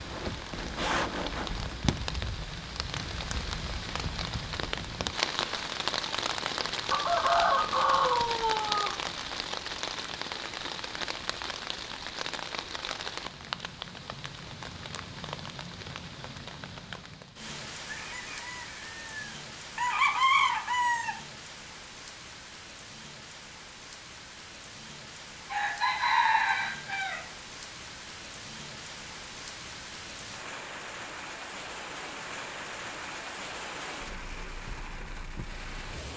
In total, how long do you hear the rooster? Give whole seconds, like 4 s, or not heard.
7 s.